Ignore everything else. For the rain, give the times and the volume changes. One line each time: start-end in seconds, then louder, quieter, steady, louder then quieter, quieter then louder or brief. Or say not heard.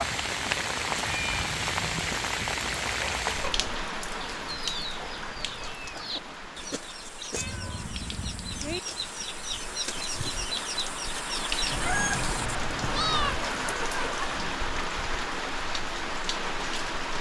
0.0-17.1 quieter then louder.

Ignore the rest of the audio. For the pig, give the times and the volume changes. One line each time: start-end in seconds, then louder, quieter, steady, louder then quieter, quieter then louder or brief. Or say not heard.
not heard.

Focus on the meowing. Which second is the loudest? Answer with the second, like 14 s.
13 s.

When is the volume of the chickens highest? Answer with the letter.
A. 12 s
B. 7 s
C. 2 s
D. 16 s
A.